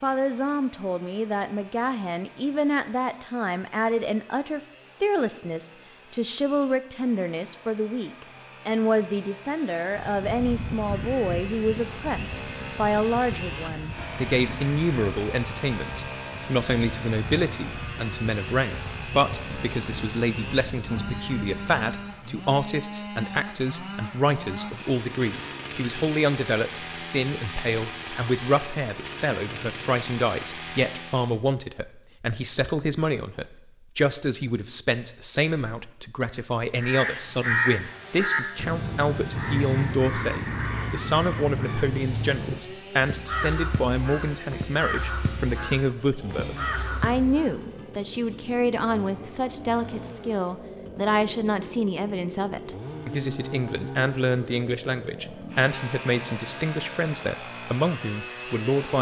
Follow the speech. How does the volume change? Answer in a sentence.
The loudness of the speech stays about the same.